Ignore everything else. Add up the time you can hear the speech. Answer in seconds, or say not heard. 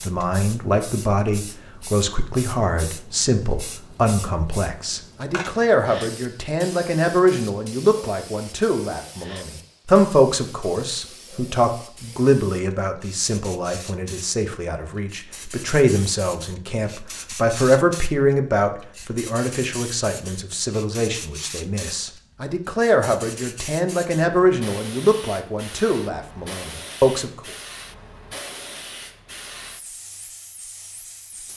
27 s.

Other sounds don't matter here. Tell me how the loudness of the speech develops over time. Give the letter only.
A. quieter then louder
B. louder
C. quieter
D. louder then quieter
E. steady
E.